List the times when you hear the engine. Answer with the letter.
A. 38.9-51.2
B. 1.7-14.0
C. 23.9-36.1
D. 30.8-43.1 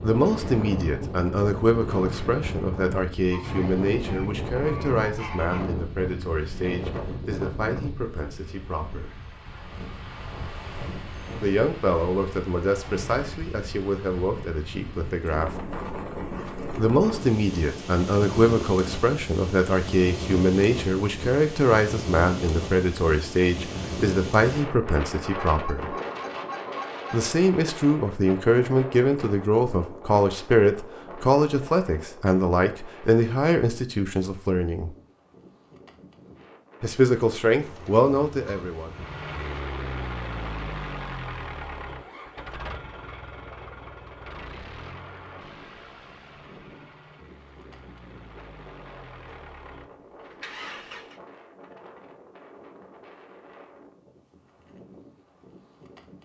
A.